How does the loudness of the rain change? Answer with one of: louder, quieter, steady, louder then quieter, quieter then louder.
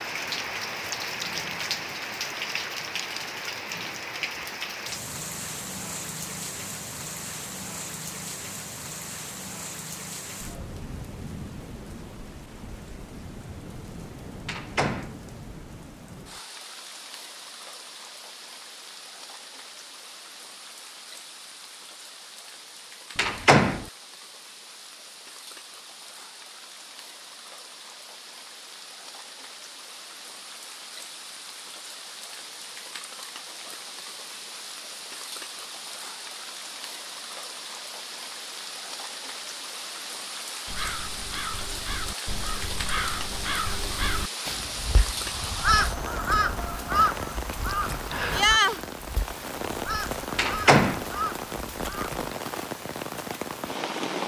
quieter then louder.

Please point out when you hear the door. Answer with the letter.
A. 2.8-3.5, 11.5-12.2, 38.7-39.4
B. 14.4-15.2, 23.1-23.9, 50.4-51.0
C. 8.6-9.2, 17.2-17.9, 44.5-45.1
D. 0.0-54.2
B.